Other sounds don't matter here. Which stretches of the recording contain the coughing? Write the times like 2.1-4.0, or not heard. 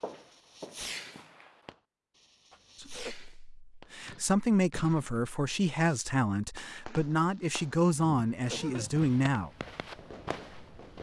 2.5-3.1, 8.4-8.9.